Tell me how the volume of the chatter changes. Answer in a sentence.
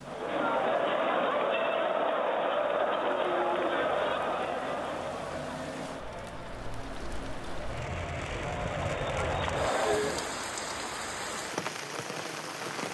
The volume of the chatter goes down, then up.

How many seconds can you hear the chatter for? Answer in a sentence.
The chatter can be heard for 10 seconds in total.